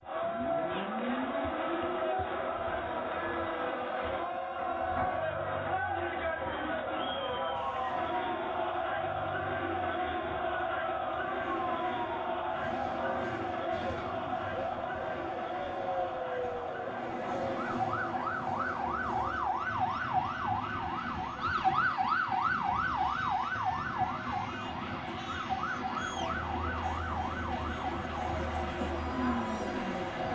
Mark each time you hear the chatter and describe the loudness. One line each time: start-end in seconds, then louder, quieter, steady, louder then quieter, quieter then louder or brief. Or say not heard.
0.0-30.2 quieter then louder.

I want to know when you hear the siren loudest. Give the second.
22 s.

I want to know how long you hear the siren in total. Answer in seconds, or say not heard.
30 s.